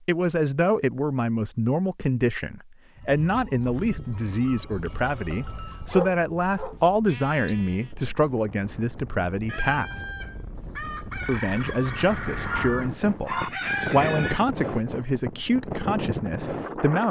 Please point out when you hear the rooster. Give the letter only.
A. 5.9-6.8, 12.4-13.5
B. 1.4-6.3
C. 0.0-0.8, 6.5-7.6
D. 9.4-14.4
D.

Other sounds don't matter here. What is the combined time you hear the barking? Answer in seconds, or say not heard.
2 s.